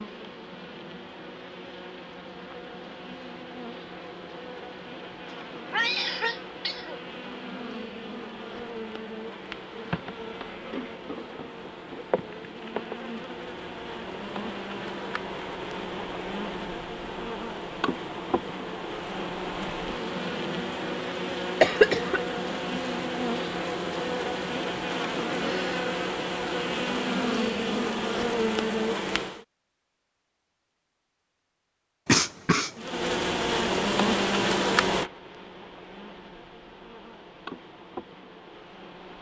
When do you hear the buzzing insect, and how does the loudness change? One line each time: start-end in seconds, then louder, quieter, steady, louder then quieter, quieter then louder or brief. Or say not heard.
0.0-29.4 louder
32.8-39.1 quieter.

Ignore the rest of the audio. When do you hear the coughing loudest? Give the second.
22 s.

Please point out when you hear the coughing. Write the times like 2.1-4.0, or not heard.
5.7-7.0, 21.6-22.2, 32.0-32.7.